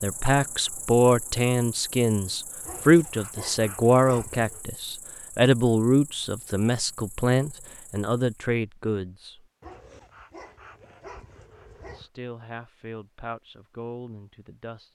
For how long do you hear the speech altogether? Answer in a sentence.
You can hear the speech for 12 seconds altogether.